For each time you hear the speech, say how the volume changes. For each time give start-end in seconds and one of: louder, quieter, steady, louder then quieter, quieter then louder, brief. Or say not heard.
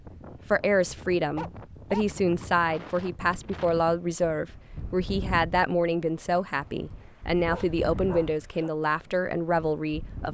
0.5-10.2 steady.